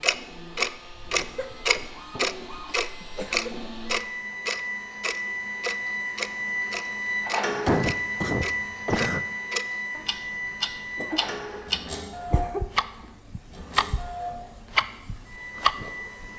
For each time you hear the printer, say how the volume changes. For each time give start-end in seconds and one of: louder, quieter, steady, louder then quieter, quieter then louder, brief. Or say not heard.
0.0-16.3 louder then quieter.